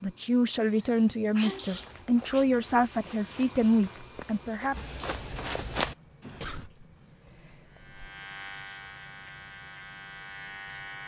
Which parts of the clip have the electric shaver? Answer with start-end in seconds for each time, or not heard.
7.7-11.0.